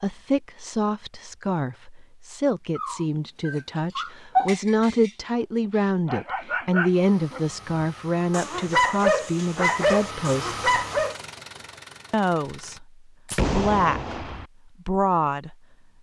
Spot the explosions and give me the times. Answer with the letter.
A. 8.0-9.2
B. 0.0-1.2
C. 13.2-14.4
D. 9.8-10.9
C.